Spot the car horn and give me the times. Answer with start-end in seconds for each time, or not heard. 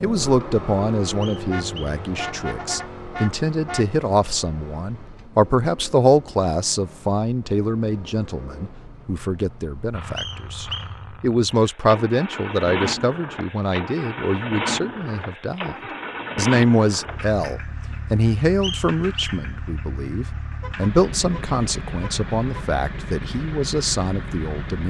1.5-3.9, 20.6-22.6.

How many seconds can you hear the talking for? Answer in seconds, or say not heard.
24 s.